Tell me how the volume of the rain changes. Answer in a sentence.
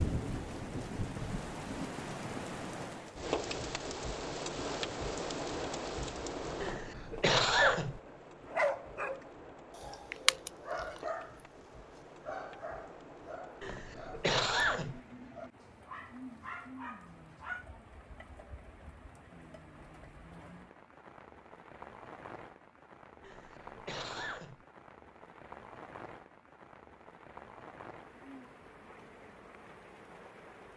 The loudness of the rain goes down.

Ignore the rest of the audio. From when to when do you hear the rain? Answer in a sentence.
You can hear the rain from 0.0 to 30.7 s.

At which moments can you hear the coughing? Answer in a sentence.
You can hear the coughing from 6.6 to 8.0 s, from 13.6 to 15.0 s and from 23.2 to 24.6 s.